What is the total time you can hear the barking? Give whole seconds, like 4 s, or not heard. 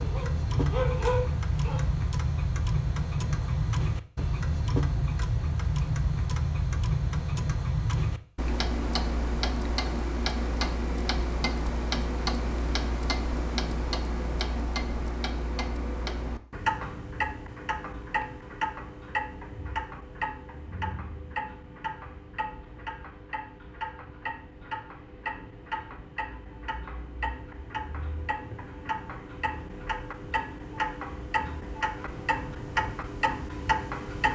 2 s.